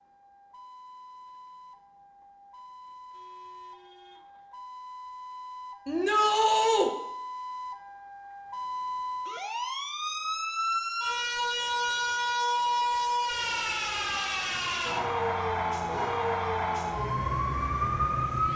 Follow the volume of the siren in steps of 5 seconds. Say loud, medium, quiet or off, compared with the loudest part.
quiet, medium, loud, loud.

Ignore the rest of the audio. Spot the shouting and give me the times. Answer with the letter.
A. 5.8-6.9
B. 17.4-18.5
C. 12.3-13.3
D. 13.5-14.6
A.